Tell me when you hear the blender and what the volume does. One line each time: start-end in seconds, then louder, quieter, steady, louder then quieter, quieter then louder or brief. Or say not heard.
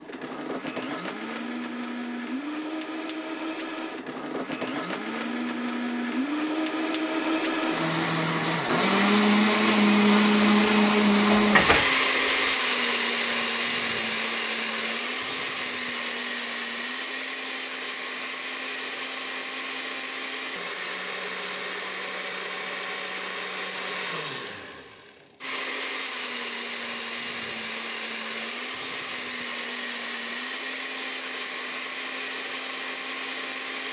0.0-33.8 louder then quieter.